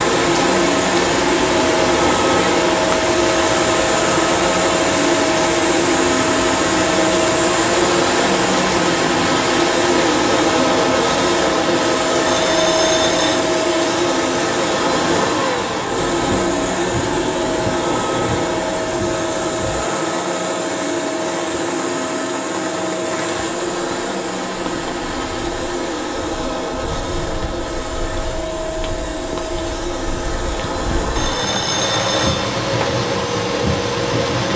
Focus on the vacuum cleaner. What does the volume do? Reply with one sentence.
The loudness of the vacuum cleaner goes down.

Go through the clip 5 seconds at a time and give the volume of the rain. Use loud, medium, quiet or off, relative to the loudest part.
loud, loud, loud, medium, medium, quiet, loud.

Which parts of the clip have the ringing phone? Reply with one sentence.
The ringing phone can be heard from 12.2 to 13.4 s and from 31.1 to 32.5 s.